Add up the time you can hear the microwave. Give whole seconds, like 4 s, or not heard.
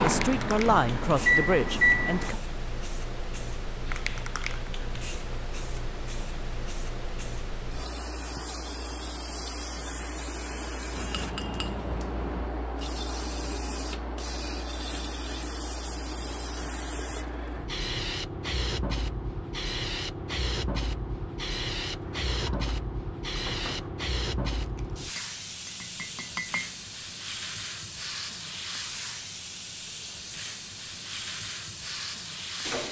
2 s.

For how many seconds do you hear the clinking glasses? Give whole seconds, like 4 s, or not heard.
4 s.